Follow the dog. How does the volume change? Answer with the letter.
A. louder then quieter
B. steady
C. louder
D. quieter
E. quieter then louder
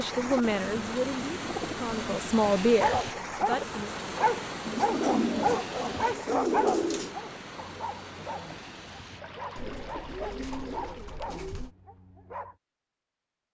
D.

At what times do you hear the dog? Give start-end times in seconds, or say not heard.
2.6-12.6.